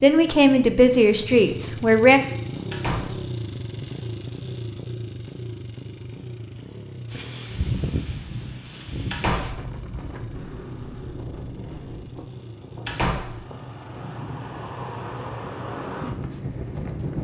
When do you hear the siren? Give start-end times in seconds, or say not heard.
not heard.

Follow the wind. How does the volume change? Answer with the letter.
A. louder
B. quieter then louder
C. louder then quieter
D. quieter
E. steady
B.